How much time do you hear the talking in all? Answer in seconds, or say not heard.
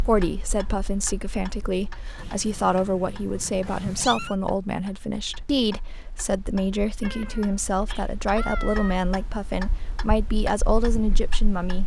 12 s.